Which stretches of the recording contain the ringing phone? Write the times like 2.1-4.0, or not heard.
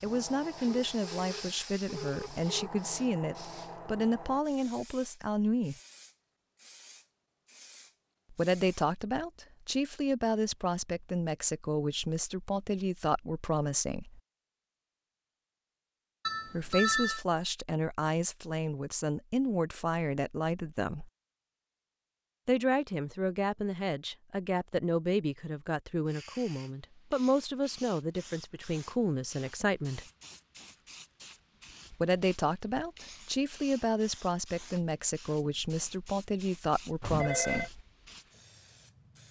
0.7-2.5, 16.2-17.2, 37.0-37.7.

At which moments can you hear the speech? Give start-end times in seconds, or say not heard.
0.0-5.8, 8.3-14.2, 16.5-21.1, 22.4-30.1, 31.9-37.8.